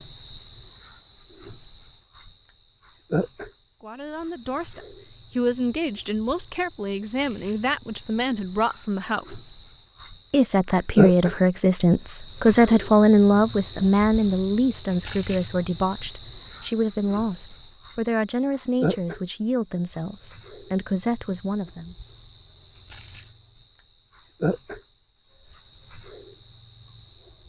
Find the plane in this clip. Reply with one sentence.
You can't hear the plane here.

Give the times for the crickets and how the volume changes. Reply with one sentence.
The crickets can be heard from 0.0 to 27.4 s, getting louder then quieter.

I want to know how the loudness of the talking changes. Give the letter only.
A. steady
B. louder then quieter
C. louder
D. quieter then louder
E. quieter
B.